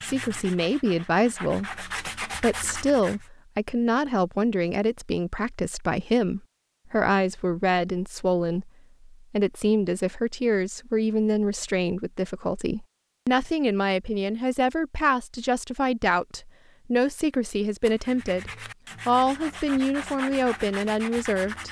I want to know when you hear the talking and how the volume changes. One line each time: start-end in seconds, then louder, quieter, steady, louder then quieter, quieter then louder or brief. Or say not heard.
0.1-21.6 steady.